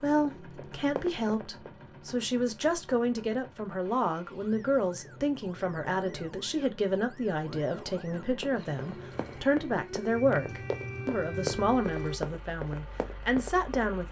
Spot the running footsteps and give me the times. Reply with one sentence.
You can hear the running footsteps from 0.4 to 1.7 s and from 8.4 to 14.0 s.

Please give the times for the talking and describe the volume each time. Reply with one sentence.
The talking can be heard from 0.0 to 14.0 s, at a steady volume.